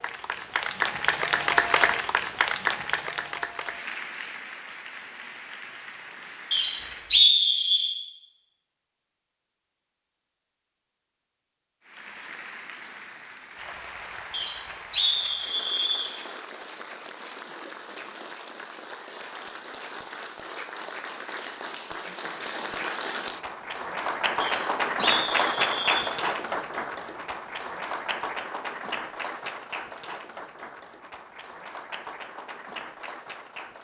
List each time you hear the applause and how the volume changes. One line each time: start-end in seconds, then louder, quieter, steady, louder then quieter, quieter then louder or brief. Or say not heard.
0.0-7.2 quieter
11.8-33.7 louder then quieter.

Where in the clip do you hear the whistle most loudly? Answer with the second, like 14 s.
7 s.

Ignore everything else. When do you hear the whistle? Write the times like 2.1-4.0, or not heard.
6.5-8.0, 14.3-16.1, 24.4-26.1.